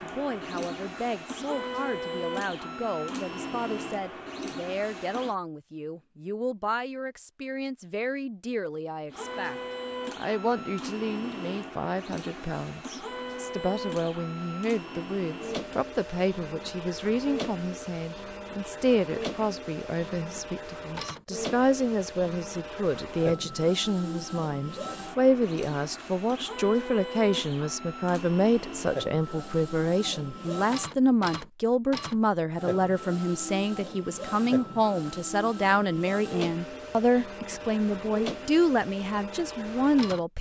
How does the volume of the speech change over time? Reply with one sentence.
The volume of the speech goes up.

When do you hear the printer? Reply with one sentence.
The printer can be heard from 0.0 to 5.3 s and from 9.1 to 40.2 s.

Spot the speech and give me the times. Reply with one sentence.
You can hear the speech from 0.0 to 40.3 s.